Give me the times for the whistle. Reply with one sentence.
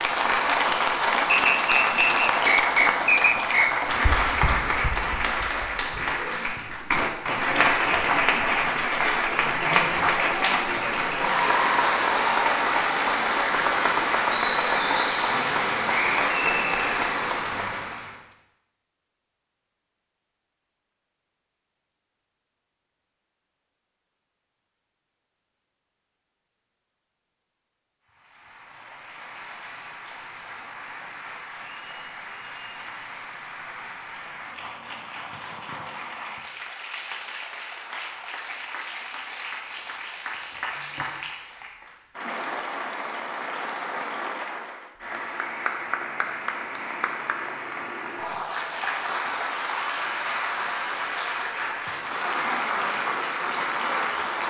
You can hear the whistle from 1.3 to 3.7 s.